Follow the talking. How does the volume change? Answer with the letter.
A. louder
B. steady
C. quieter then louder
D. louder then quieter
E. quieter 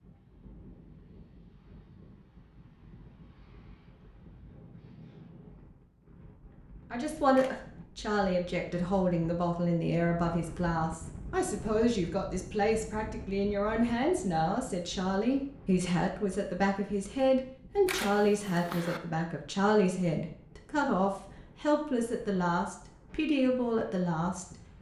B.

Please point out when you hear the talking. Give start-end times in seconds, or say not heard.
6.9-24.7.